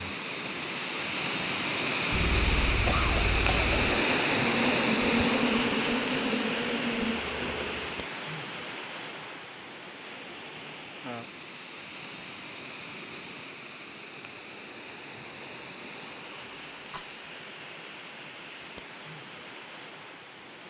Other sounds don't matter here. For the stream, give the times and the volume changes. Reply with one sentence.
The stream can be heard from 0.0 to 20.6 s, getting quieter.